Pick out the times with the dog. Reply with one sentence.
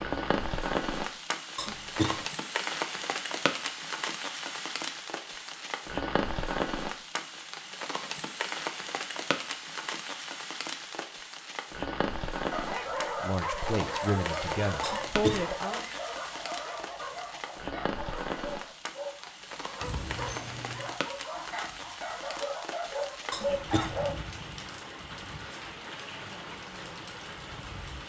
You can hear the dog from 12.5 to 24.2 s.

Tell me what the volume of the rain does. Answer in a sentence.
The loudness of the rain goes down.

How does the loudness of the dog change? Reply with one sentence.
The volume of the dog goes down, then up.